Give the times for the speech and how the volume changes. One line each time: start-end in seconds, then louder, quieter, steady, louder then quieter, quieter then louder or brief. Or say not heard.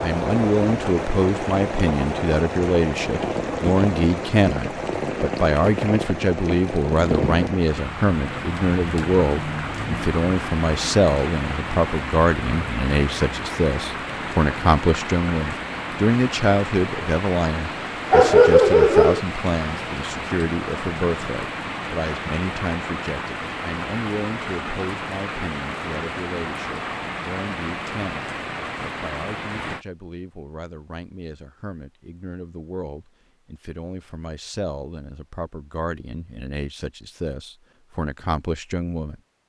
0.0-39.2 quieter.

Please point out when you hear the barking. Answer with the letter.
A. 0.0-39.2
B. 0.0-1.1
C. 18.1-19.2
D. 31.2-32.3
C.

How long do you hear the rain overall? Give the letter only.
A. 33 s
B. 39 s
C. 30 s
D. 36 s
C.